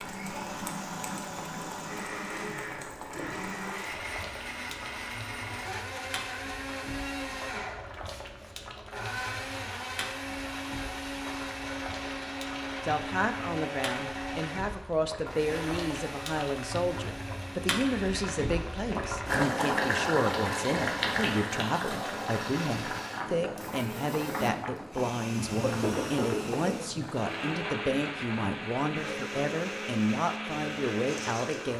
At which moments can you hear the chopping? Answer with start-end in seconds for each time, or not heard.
not heard.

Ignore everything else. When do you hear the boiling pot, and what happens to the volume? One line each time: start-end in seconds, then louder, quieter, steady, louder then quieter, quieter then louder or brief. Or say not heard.
0.0-31.7 louder then quieter.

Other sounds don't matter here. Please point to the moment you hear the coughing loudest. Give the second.
26 s.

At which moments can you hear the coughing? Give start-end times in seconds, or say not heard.
25.5-27.6.